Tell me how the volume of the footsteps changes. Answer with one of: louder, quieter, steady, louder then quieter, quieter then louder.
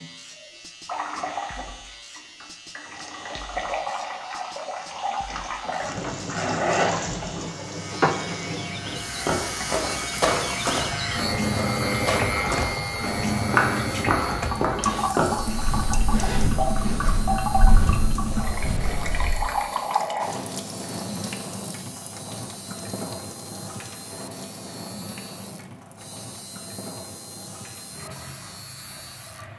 quieter.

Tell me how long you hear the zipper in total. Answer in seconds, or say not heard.
3 s.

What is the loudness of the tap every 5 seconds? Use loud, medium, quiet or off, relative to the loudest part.
medium, loud, loud, loud, medium, quiet.